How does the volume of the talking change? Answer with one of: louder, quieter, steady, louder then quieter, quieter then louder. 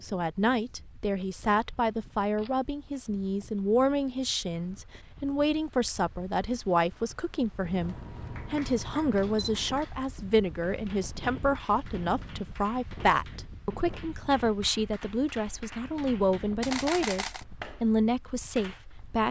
steady.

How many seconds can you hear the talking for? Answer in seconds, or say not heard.
19 s.